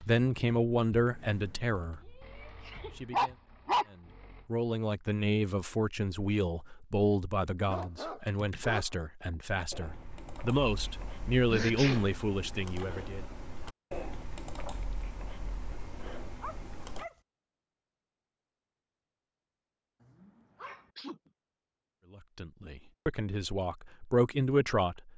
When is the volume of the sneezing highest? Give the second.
12 s.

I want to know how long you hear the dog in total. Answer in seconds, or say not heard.
5 s.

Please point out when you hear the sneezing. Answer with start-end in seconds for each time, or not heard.
2.0-3.0, 11.5-12.1, 20.6-21.3.